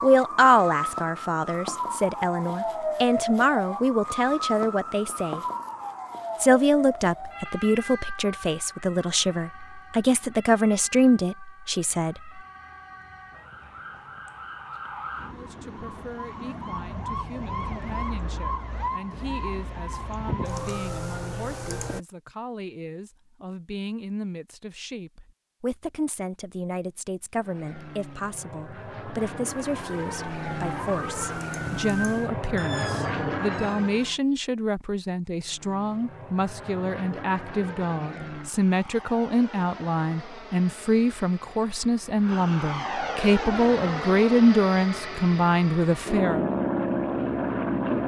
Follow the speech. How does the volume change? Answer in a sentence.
The loudness of the speech goes down, then up.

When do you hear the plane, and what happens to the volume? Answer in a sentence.
You can hear the plane from 27.4 to 34.2 s, getting louder; and from 35.4 to 48.0 s, getting louder.